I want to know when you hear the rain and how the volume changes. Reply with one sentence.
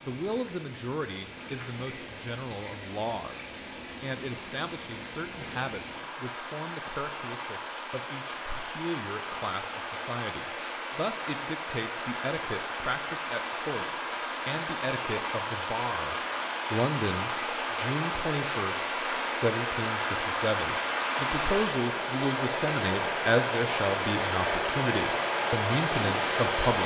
The rain can be heard from 0.0 to 26.8 s, getting louder.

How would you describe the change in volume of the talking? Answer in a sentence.
The volume of the talking goes up.